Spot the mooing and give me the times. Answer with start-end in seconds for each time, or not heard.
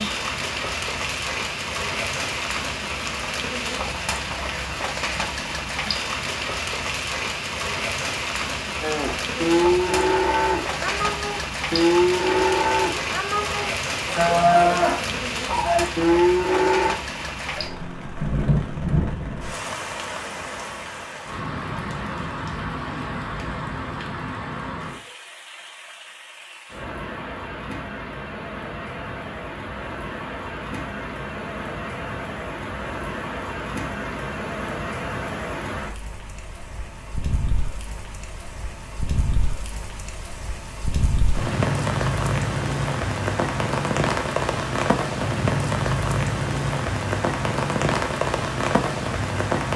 8.8-16.9.